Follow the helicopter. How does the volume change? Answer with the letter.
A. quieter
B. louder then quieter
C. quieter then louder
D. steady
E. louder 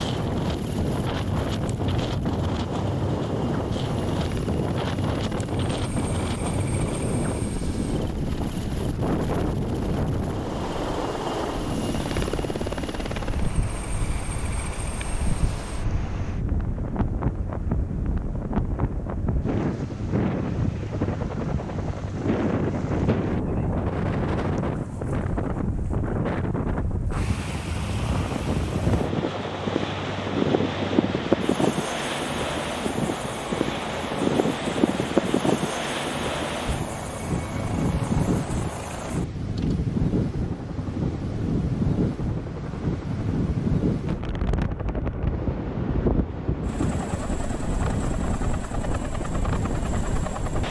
D.